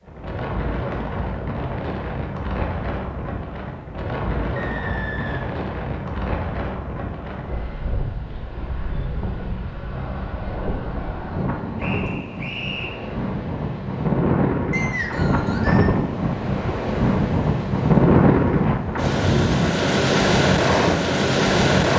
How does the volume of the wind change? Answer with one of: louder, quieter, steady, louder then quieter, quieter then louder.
louder.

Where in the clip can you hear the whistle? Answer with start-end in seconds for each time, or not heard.
4.5-5.5, 11.8-12.9, 14.7-15.9.